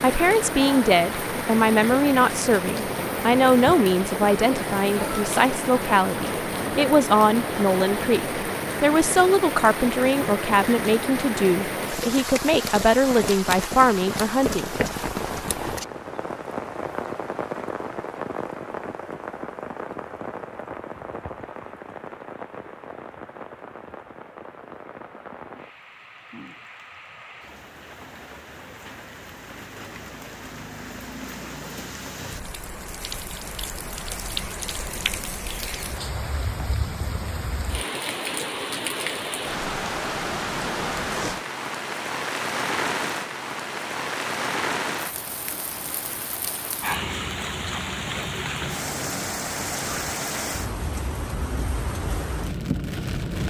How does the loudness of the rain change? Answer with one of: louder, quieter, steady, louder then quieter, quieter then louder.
quieter then louder.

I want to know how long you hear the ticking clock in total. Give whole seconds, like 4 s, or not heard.
not heard.